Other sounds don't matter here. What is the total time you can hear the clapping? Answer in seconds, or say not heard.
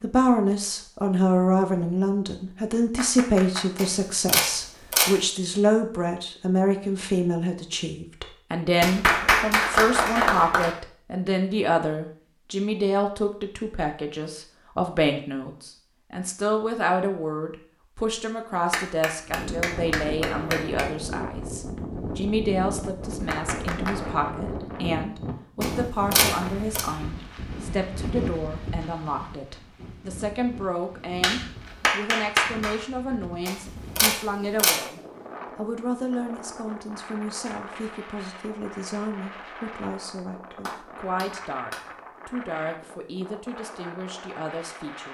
8 s.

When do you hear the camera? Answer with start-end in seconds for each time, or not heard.
3.8-5.2, 25.6-26.8, 33.5-34.8.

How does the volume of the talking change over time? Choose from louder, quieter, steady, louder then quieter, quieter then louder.
quieter.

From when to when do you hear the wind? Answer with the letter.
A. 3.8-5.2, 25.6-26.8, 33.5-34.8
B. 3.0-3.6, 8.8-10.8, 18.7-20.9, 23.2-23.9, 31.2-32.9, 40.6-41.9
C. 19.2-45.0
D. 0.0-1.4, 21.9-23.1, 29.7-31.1
C.